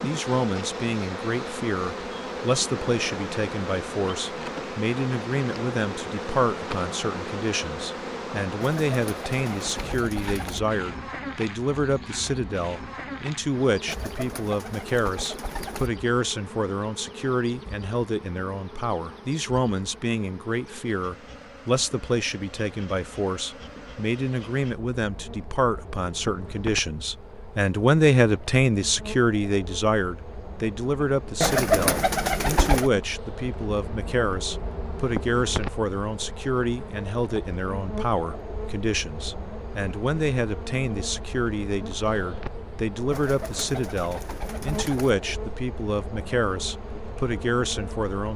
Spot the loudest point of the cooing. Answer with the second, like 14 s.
32 s.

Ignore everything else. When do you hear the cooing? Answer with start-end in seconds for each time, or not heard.
8.6-10.6, 13.8-15.9, 31.4-32.9, 43.1-45.1.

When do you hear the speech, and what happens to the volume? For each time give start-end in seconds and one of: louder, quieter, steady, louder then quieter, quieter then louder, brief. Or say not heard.
0.0-48.3 steady.